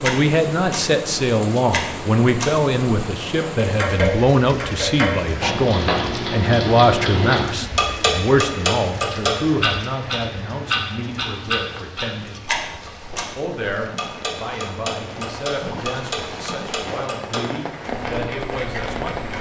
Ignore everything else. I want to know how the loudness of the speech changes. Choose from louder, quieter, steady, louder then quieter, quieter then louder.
quieter.